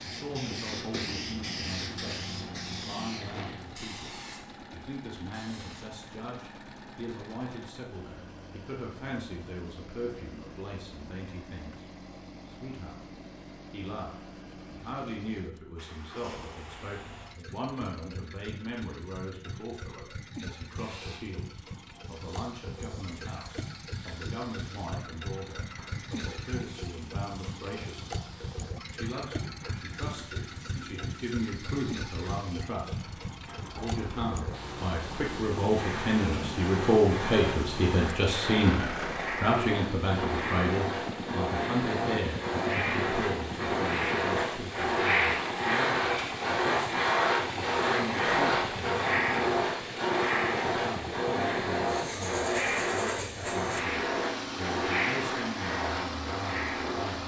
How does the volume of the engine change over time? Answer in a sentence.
The volume of the engine goes up.